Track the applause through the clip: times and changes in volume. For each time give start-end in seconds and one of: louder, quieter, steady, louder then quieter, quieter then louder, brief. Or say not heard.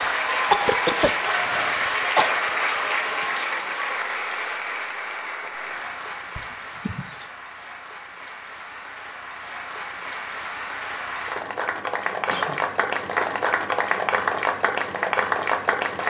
0.0-16.0 quieter then louder.